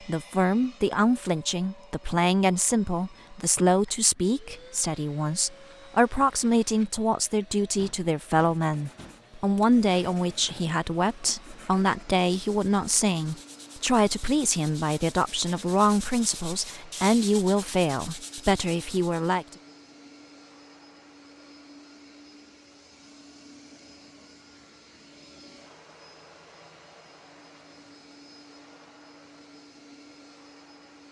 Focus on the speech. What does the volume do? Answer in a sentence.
The loudness of the speech stays about the same.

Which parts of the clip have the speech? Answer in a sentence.
You can hear the speech from 0.1 to 19.4 s.